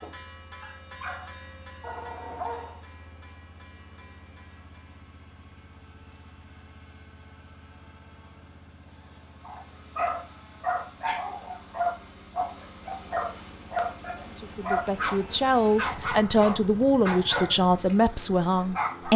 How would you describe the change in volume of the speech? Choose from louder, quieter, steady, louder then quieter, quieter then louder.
steady.